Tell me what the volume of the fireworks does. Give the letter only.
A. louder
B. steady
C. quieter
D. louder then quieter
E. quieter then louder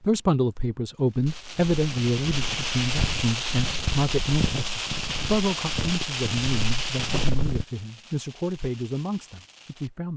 C.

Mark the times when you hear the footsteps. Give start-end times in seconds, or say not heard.
1.2-7.7.